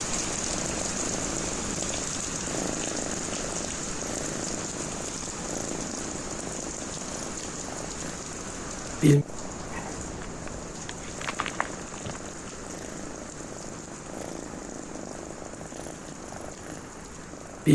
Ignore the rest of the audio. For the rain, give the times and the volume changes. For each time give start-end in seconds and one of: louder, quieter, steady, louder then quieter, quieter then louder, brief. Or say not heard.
0.0-17.6 quieter.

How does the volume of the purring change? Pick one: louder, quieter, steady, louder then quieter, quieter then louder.
louder then quieter.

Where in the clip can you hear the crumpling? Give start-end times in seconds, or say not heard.
9.7-12.3.